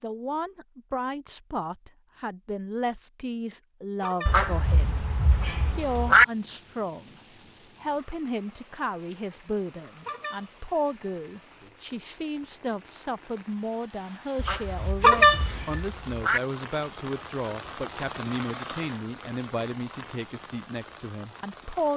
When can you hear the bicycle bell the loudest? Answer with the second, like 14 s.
15 s.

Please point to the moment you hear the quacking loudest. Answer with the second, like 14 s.
6 s.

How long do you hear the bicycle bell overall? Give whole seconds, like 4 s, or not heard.
3 s.